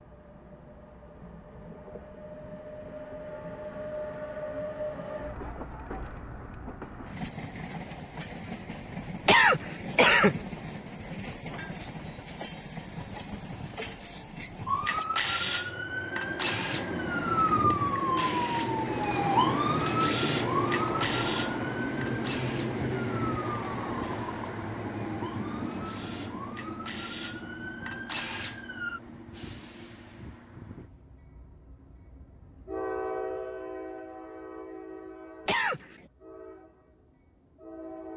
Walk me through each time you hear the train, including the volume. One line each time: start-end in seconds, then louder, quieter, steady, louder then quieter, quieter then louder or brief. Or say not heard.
0.0-38.1 louder then quieter.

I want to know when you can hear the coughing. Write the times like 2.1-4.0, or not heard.
9.2-10.3, 35.5-36.0.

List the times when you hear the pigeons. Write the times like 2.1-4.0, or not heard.
not heard.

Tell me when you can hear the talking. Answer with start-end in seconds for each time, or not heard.
not heard.